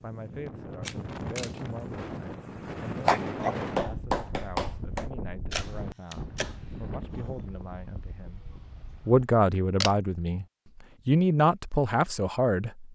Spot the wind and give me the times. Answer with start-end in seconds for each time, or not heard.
0.0-9.3.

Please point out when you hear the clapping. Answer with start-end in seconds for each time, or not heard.
3.0-5.0.